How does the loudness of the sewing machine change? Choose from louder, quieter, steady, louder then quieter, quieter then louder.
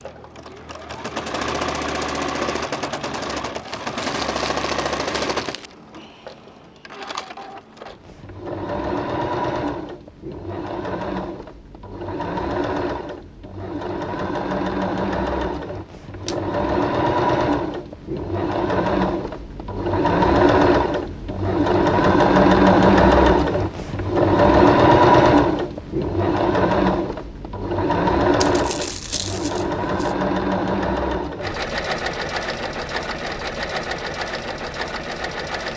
louder then quieter.